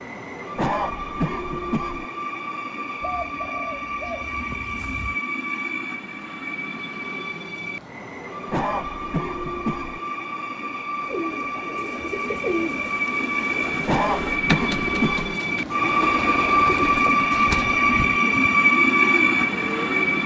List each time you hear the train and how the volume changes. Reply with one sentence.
The train can be heard from 0.0 to 20.2 s, getting louder.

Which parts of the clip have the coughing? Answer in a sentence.
The coughing can be heard from 0.6 to 2.0 s, from 8.5 to 10.0 s and from 13.8 to 15.3 s.